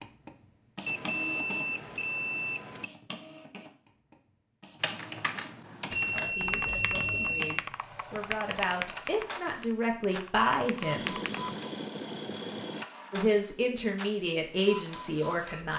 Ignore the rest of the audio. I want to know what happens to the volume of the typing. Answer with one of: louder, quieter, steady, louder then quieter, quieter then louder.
steady.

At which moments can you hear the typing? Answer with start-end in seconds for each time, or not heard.
4.8-11.6.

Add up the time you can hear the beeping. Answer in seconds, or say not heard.
6 s.